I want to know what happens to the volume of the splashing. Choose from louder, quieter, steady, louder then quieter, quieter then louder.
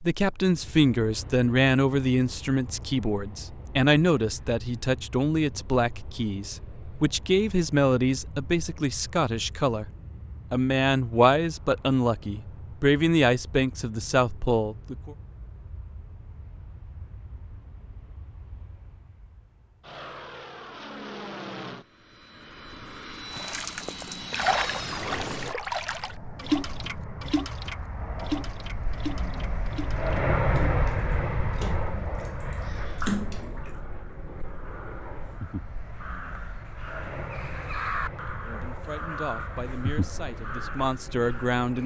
quieter then louder.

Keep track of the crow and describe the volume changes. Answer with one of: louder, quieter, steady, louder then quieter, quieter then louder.
louder.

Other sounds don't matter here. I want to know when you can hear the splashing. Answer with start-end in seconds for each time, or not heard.
23.3-33.7.